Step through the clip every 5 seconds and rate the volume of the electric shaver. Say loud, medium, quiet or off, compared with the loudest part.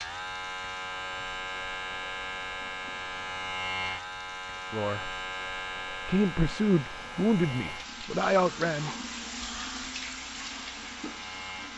loud, loud, medium.